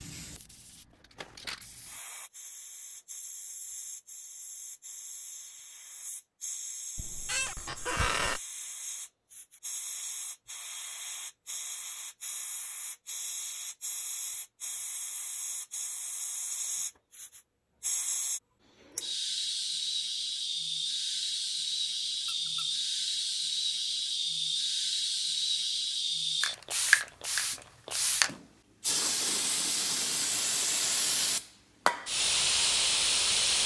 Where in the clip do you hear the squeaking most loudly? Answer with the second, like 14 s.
8 s.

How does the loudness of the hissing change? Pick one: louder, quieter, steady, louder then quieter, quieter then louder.
louder.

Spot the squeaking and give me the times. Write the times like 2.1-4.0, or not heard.
7.0-8.4, 22.2-22.7.